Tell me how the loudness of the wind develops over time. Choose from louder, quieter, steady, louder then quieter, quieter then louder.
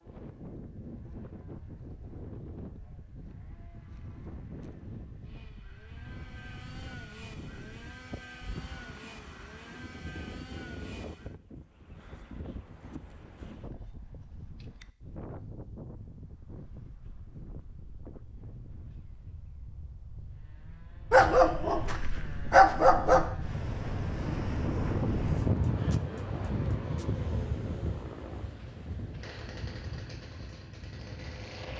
louder.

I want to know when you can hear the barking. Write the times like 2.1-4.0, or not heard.
21.1-23.3.